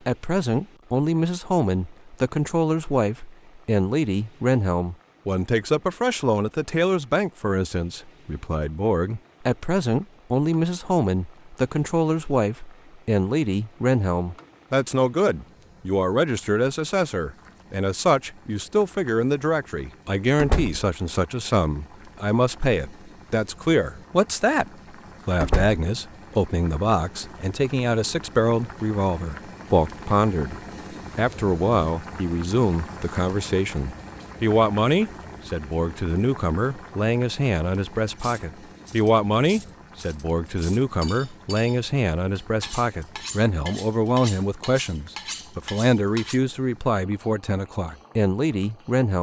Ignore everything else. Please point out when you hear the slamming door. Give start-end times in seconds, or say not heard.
20.4-20.9, 25.4-25.8.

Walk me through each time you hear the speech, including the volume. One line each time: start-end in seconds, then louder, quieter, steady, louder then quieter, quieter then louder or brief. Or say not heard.
0.1-30.6 steady
31.1-49.1 steady.